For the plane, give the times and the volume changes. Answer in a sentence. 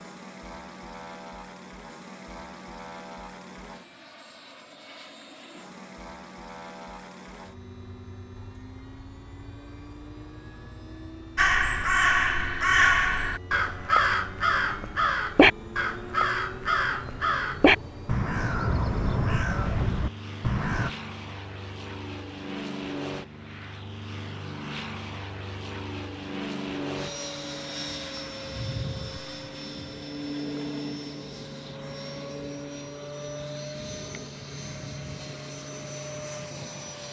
The plane can be heard from 0.0 to 37.0 s, getting louder.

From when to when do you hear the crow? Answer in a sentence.
You can hear the crow from 11.3 to 20.9 s.